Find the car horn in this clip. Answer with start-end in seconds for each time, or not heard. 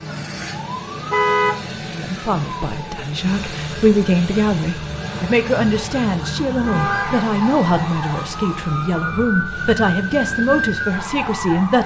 1.1-1.6, 6.6-7.3.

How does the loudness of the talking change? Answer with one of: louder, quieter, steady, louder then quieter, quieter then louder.
steady.